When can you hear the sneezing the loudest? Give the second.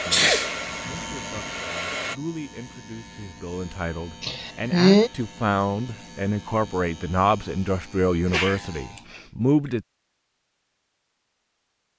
5 s.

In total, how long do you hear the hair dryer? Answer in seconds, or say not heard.
2 s.